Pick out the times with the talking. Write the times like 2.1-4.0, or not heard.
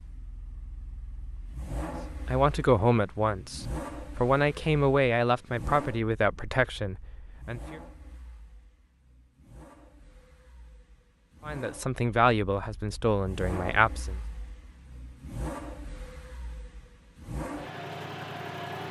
2.2-7.8, 11.4-14.2.